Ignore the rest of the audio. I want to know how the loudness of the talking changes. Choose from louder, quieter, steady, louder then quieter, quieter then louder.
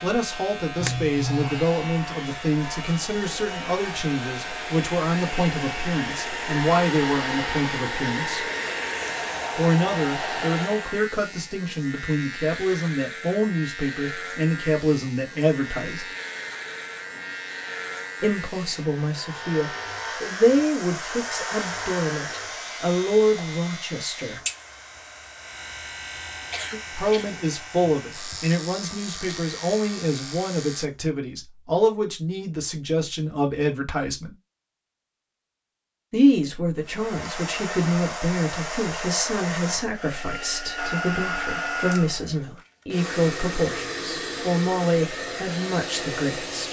steady.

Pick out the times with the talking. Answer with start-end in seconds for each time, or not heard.
0.0-8.4, 9.6-16.1, 18.2-24.4, 26.9-34.4, 36.1-46.6.